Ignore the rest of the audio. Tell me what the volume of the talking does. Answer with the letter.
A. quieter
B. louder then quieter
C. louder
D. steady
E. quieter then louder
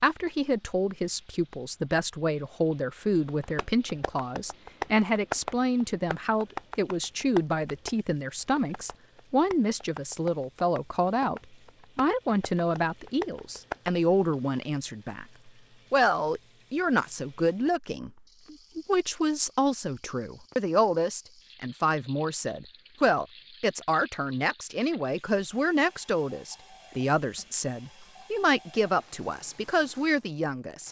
D.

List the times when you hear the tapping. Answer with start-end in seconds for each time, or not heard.
3.2-13.9.